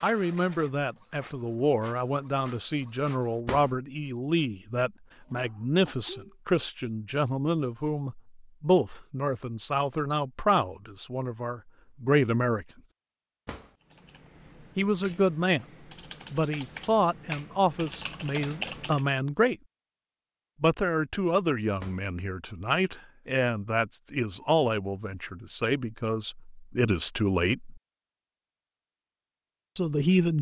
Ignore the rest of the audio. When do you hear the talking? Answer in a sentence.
You can hear the talking from 0.0 to 12.7 s, from 14.8 to 15.7 s, from 16.3 to 19.6 s, from 20.6 to 27.8 s and from 29.8 to 30.3 s.